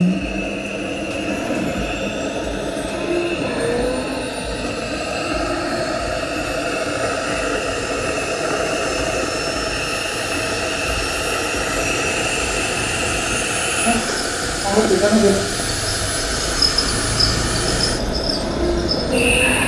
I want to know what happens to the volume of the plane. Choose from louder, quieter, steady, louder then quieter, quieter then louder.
steady.